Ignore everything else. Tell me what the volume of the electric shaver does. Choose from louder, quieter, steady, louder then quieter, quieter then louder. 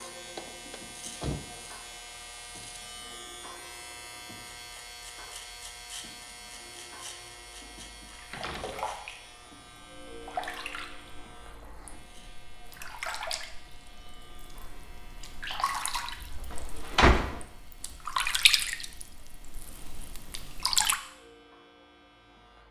quieter.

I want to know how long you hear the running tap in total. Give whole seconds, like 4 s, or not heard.
13 s.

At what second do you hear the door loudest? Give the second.
17 s.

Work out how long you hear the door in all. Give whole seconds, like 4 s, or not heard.
3 s.